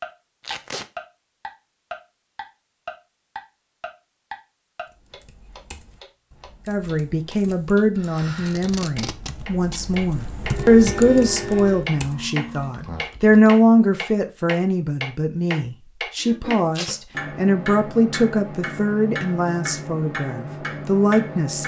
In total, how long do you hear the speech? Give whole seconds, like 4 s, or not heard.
15 s.